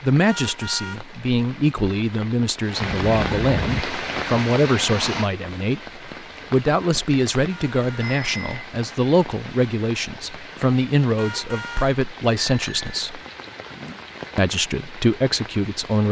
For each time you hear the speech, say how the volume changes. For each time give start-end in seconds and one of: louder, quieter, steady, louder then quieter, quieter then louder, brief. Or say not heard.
0.0-13.2 steady
14.3-16.0 brief.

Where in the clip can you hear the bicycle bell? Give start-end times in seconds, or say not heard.
2.8-3.9, 8.0-8.7, 12.3-12.9.